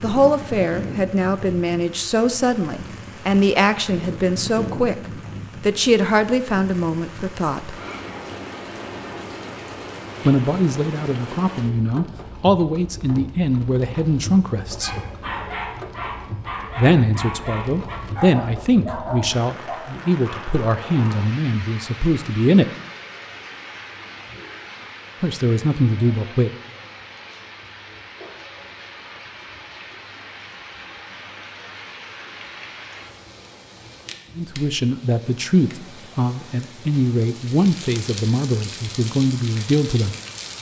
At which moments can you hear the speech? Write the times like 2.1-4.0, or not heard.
0.0-7.8, 10.2-14.9, 16.8-22.6, 25.2-26.5, 34.4-40.1.